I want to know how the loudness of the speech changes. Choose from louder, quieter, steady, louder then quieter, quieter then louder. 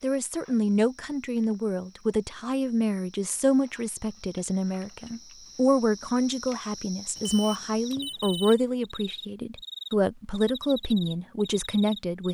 steady.